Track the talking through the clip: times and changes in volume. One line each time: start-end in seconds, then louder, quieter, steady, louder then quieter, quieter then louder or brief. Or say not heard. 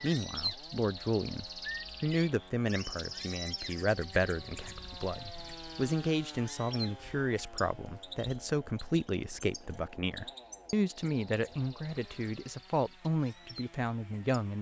0.0-14.5 steady.